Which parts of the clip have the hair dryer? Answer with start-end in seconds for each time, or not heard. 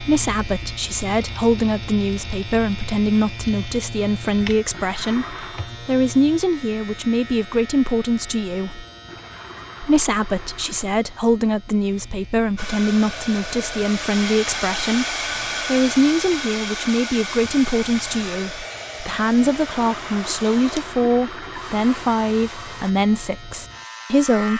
12.6-22.9.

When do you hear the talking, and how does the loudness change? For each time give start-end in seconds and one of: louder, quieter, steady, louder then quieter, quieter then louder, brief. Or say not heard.
0.0-8.8 steady
9.8-24.5 steady.